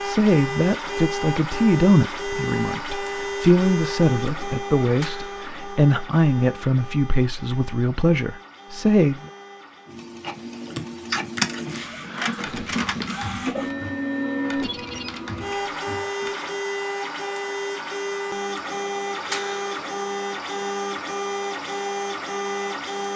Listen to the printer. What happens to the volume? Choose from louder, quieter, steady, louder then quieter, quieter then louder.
quieter then louder.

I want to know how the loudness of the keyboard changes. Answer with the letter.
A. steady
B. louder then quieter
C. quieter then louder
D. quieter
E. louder
D.